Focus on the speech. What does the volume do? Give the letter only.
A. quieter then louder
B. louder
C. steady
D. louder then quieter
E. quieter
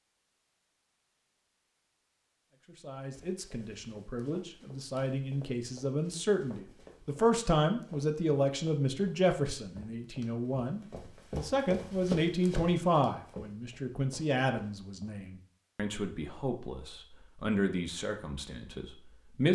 D.